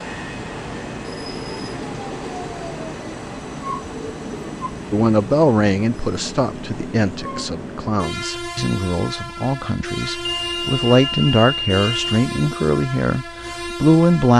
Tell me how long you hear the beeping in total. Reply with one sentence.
You can hear the beeping for 2 seconds altogether.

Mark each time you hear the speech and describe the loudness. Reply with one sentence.
The speech can be heard from 4.9 to 14.3 s, getting quieter then louder.